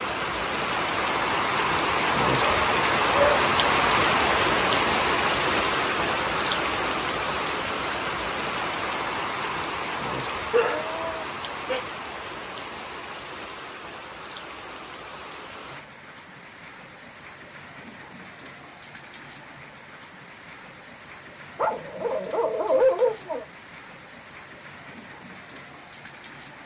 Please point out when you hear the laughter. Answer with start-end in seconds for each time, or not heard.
not heard.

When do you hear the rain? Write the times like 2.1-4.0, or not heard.
0.0-26.6.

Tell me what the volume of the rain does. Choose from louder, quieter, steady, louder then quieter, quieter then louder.
quieter.